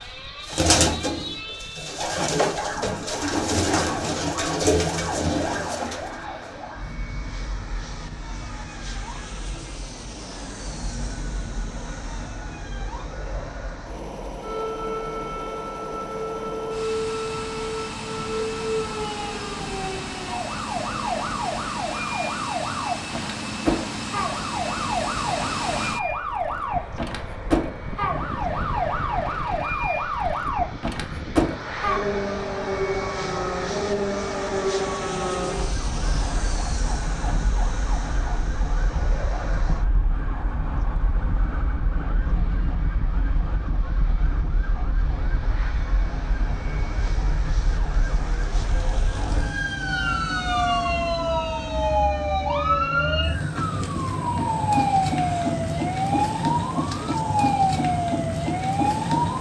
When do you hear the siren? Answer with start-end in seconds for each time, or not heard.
0.0-59.3.